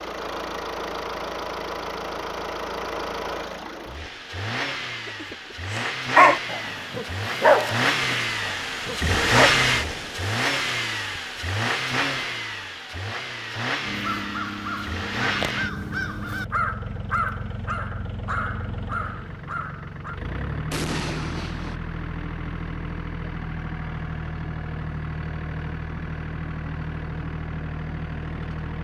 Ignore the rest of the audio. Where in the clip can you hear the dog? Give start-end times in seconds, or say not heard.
5.7-9.6.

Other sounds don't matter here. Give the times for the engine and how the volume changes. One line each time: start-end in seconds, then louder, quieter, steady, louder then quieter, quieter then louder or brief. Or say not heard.
0.0-28.8 louder then quieter.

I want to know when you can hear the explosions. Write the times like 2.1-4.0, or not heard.
9.0-10.3, 20.7-21.8.